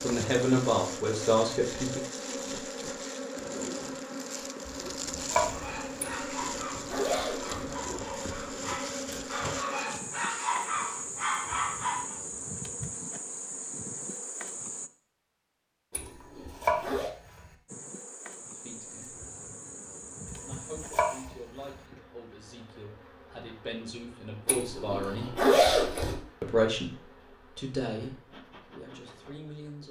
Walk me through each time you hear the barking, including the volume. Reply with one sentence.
The barking can be heard from 5.5 to 12.2 s, getting louder.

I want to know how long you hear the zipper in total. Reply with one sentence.
The zipper can be heard for 5 seconds in total.